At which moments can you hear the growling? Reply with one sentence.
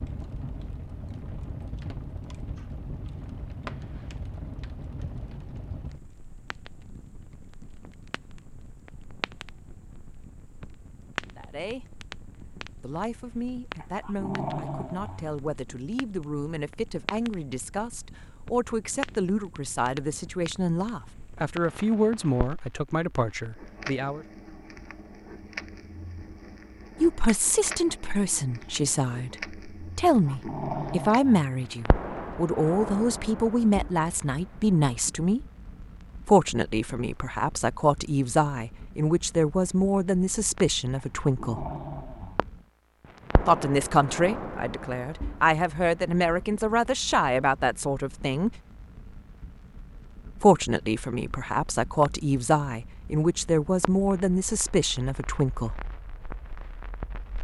The growling can be heard from 13.8 to 15.6 s, from 30.1 to 31.6 s and from 41.1 to 42.5 s.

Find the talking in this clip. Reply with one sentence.
You can hear the talking from 11.3 to 11.8 s, from 12.8 to 24.2 s, from 27.0 to 35.4 s, from 36.2 to 41.6 s, from 43.5 to 48.5 s and from 50.4 to 55.8 s.